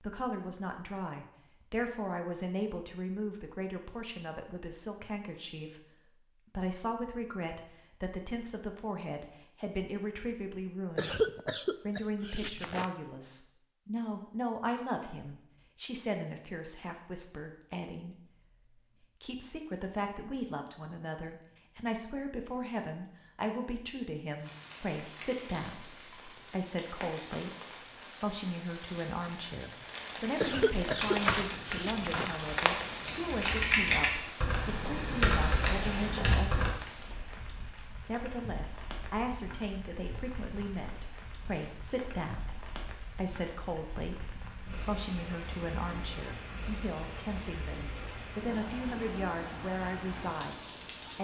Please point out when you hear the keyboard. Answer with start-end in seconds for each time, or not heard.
30.9-36.8.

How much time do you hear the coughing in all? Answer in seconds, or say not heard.
4 s.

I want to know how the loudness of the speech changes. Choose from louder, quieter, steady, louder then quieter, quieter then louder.
steady.